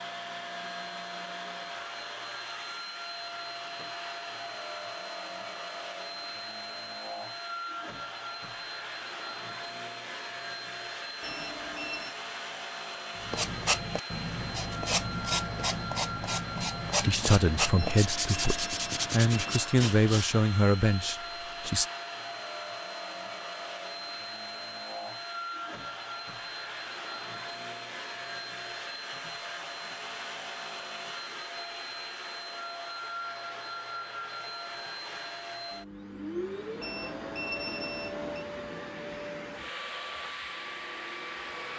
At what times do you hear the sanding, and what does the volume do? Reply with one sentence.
The sanding can be heard from 13.2 to 20.3 s, at a steady volume.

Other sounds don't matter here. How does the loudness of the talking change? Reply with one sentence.
The volume of the talking goes down, then up.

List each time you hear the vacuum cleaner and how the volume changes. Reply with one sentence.
You can hear the vacuum cleaner from 0.0 to 41.7 s, at a steady volume.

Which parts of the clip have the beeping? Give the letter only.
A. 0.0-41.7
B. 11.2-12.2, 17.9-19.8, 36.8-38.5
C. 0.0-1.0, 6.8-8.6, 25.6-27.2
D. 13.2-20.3
B.